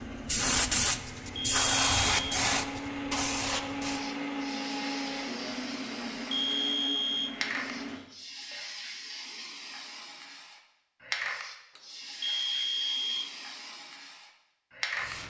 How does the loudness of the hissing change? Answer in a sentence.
The volume of the hissing goes down.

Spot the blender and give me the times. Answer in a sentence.
You can hear the blender from 0.0 to 8.7 s.